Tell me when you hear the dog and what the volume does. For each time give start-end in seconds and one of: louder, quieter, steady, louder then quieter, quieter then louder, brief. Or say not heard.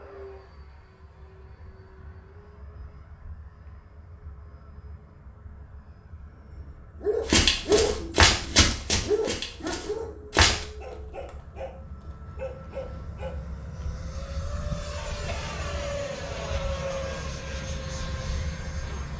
6.4-13.6 quieter.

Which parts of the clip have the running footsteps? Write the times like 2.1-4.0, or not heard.
7.2-10.7.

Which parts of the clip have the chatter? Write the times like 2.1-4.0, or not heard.
not heard.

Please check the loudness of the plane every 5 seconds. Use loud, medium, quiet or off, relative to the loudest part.
quiet, quiet, medium, loud.